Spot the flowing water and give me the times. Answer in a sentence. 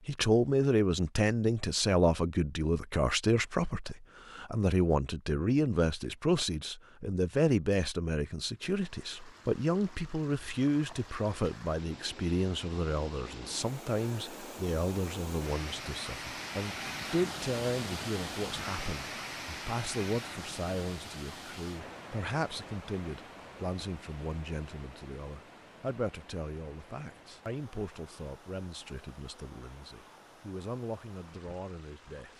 The flowing water can be heard from 8.6 to 32.3 s.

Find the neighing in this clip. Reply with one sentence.
The neighing can't be heard in this clip.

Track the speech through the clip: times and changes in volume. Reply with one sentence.
You can hear the speech from 0.1 to 32.3 s, getting quieter.